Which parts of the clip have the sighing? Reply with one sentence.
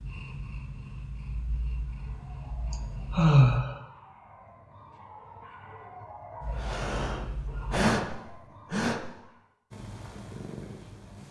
You can hear the sighing from 2.7 to 3.8 s and from 6.5 to 9.1 s.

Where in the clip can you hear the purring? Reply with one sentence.
The purring can be heard from 0.0 to 3.4 s, from 6.4 to 7.9 s and from 9.7 to 11.2 s.